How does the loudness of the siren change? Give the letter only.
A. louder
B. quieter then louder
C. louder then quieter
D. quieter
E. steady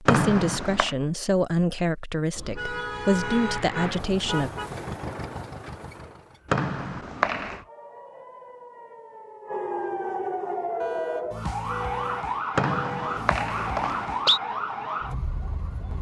A.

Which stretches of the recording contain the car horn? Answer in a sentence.
You can hear the car horn from 2.4 to 4.8 s and from 10.8 to 13.2 s.